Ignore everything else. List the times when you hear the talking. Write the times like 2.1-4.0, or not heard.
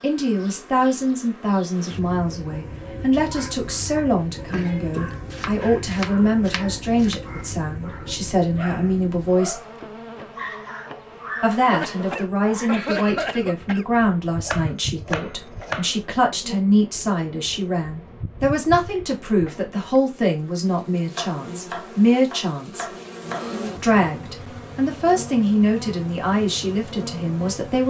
0.0-9.6, 11.4-22.9, 23.8-27.8.